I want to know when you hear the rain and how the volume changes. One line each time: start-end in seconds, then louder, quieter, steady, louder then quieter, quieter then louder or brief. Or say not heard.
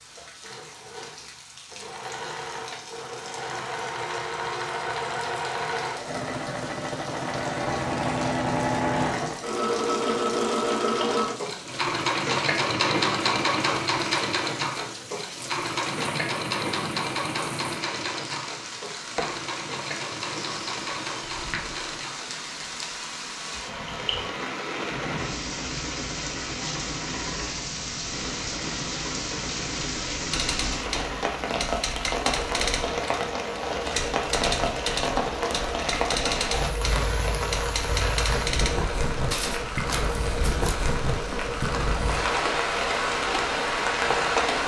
0.0-44.6 louder.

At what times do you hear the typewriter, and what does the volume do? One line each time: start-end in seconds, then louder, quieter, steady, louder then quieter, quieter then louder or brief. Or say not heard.
30.3-40.8 steady.